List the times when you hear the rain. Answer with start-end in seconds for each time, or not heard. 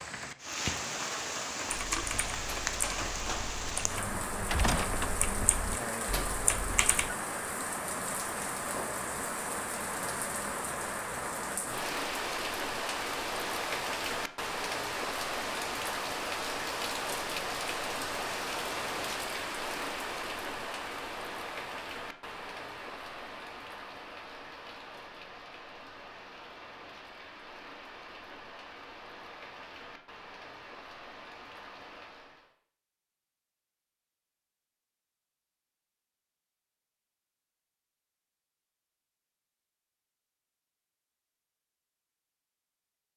0.0-32.5.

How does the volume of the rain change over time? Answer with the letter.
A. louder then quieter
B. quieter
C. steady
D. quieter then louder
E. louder
B.